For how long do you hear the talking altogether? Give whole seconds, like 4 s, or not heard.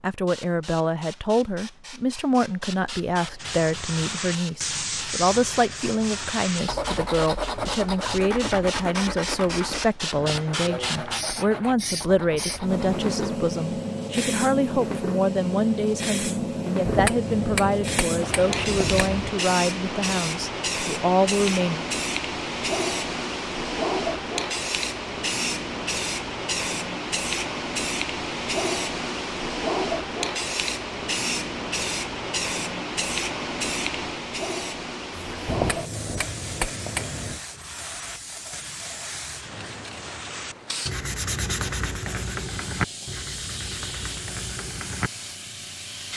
22 s.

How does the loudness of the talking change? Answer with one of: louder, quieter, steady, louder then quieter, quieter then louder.
steady.